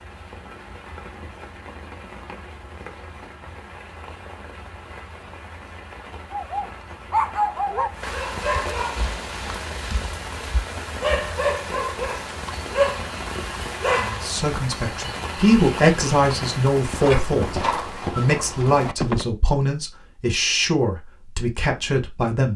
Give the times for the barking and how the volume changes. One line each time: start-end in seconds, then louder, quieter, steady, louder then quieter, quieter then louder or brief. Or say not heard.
6.3-14.4 quieter then louder.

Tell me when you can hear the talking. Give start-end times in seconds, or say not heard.
13.9-22.5.